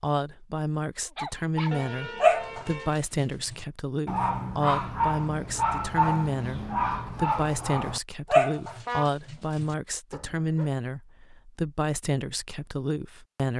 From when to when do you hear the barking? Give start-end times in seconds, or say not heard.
1.1-10.7.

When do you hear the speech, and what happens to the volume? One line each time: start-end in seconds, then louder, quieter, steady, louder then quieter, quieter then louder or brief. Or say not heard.
0.0-13.5 steady.